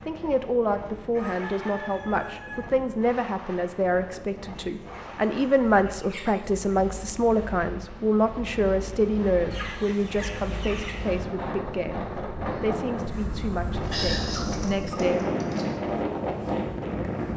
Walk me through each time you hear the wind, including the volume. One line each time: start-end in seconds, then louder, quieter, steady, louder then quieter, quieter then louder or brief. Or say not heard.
0.0-17.3 louder.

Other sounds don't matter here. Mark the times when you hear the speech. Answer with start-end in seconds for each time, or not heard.
0.1-15.3.